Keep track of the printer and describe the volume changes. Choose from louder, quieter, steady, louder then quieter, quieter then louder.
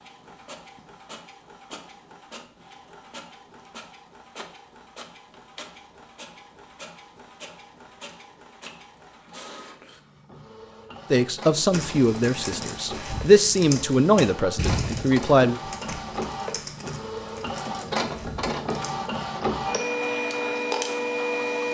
louder.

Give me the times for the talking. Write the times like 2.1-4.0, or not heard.
11.1-15.6.